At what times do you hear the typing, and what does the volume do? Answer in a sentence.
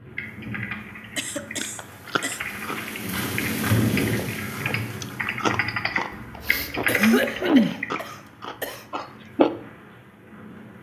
You can hear the typing from 0.1 to 8.0 s, getting louder.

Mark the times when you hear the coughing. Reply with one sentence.
The coughing can be heard from 1.1 to 2.4 s and from 6.1 to 8.8 s.